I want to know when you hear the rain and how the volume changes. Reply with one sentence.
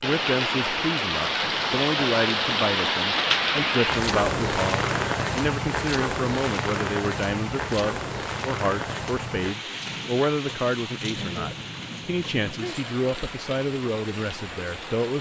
You can hear the rain from 0.0 to 15.1 s, getting quieter.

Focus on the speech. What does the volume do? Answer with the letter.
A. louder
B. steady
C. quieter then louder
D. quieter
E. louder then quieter
B.